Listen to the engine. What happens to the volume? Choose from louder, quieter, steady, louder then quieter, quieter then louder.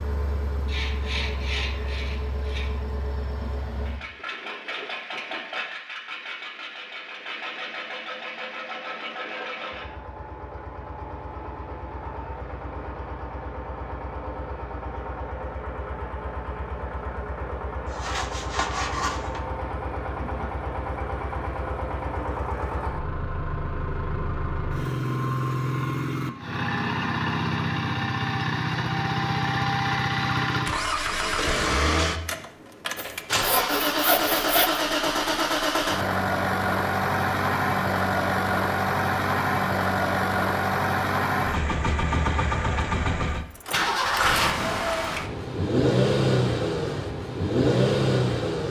louder.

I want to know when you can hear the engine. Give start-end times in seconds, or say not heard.
0.0-48.6.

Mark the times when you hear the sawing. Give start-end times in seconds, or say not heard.
0.7-2.7, 17.9-19.4, 33.0-34.8.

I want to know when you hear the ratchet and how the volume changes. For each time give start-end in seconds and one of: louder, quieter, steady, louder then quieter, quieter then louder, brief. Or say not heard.
not heard.